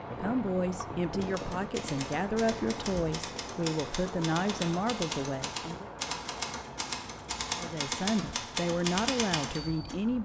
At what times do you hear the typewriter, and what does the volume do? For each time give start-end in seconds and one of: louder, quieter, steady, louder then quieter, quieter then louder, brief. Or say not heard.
1.1-9.9 louder.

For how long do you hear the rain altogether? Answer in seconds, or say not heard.
10 s.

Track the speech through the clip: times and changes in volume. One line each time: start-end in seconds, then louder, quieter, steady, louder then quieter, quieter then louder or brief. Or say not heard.
0.2-5.9 steady
7.5-10.1 brief.